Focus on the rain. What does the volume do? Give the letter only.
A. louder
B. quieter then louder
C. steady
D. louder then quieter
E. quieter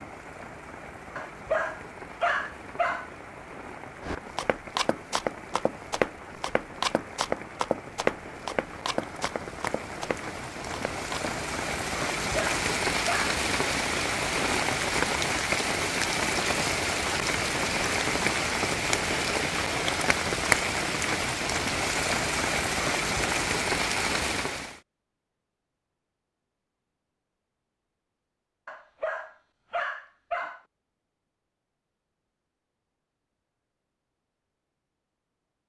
A.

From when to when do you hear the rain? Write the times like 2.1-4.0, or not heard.
0.0-24.8.